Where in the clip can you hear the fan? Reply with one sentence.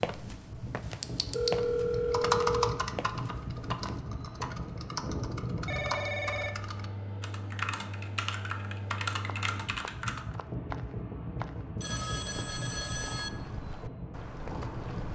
You can hear the fan from 0.0 to 15.0 s.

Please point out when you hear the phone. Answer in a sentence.
The phone can be heard from 1.3 to 2.8 s, from 5.7 to 6.8 s and from 11.8 to 13.3 s.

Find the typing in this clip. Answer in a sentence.
The typing can be heard from 0.8 to 10.2 s.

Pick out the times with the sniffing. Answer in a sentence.
The sniffing can't be heard in this clip.